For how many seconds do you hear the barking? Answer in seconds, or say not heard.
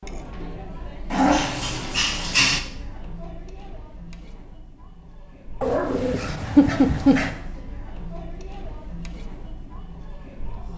3 s.